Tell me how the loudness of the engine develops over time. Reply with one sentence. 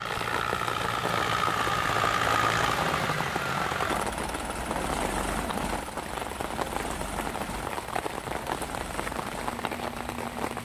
The volume of the engine goes down.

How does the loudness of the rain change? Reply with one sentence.
The loudness of the rain stays about the same.